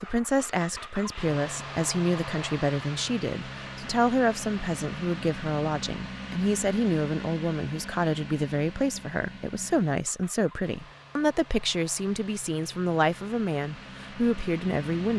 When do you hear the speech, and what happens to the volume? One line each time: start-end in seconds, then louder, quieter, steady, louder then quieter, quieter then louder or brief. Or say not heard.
0.0-15.1 steady.